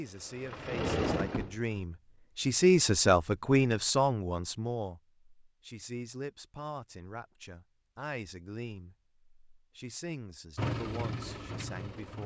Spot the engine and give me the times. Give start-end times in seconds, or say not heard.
0.0-1.8, 10.6-12.2.